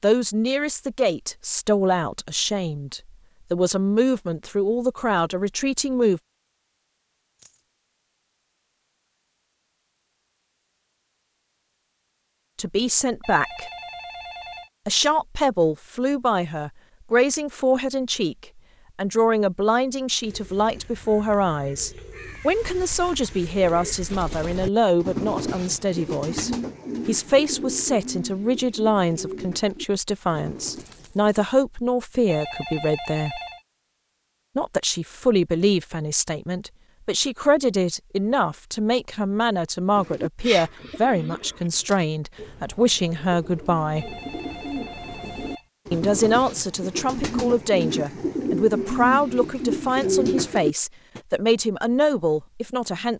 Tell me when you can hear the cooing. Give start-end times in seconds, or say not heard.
20.2-31.4, 40.0-51.2.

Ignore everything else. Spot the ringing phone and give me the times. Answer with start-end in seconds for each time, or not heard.
13.2-14.7, 32.2-33.6, 44.0-45.7.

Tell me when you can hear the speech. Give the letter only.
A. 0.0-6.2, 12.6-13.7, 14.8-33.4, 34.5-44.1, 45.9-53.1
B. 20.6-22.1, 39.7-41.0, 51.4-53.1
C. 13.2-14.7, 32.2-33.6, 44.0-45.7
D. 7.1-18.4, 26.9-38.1
A.